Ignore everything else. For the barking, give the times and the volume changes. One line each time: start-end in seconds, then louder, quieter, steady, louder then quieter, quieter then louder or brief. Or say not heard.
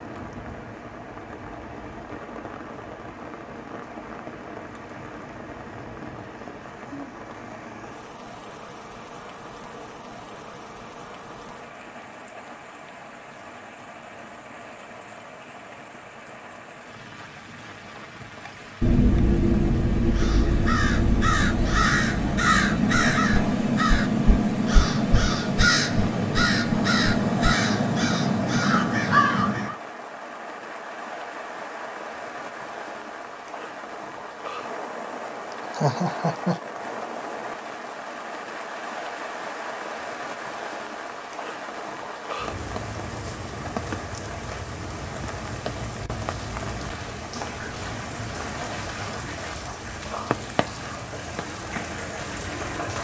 not heard.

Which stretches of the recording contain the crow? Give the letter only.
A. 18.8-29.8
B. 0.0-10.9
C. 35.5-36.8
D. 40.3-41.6
A.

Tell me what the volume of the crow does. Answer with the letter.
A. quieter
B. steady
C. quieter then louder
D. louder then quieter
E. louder
B.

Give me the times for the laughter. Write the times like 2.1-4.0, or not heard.
35.5-36.8.